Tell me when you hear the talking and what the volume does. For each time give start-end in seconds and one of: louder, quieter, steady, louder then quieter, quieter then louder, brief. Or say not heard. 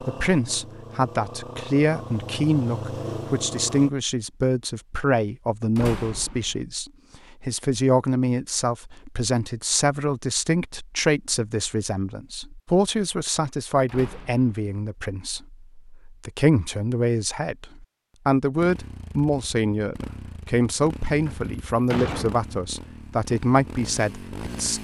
0.0-24.8 steady.